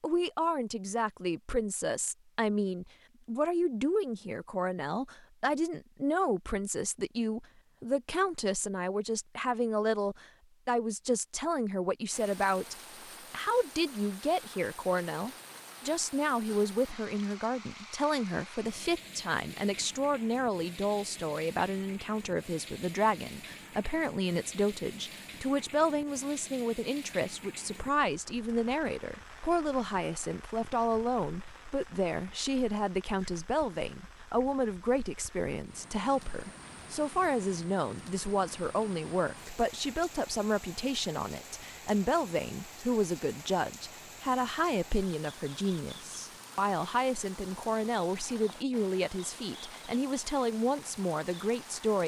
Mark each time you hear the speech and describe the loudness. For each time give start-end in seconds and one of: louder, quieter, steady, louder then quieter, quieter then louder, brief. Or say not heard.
0.0-52.0 steady.